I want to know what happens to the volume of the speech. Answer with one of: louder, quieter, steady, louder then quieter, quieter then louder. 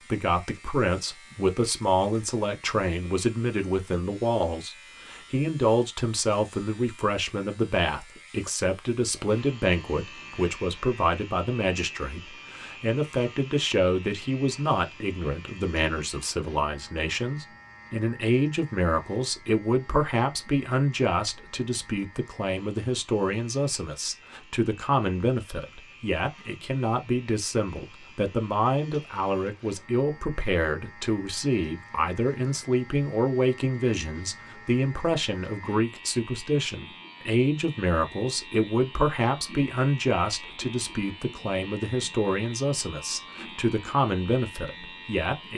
steady.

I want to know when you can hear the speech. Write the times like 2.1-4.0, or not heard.
0.1-45.5.